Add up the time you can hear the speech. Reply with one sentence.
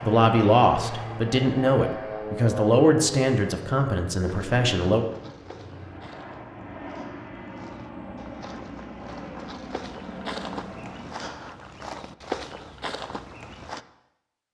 The speech can be heard for 5 seconds in total.